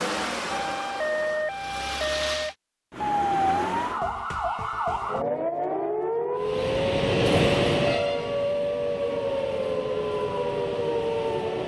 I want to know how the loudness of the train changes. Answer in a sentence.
The volume of the train goes down.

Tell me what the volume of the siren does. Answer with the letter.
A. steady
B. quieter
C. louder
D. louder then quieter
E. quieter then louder
A.